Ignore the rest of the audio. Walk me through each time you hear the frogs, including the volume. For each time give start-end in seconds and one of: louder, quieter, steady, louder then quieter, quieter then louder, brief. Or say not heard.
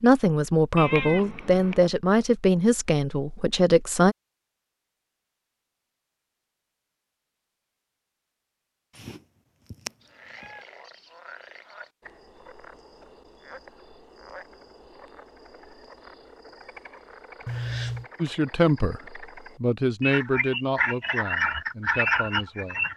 10.0-22.9 louder.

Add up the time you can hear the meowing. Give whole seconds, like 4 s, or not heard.
3 s.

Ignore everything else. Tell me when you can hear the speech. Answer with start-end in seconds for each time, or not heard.
0.0-4.2, 18.2-19.0, 19.6-22.9.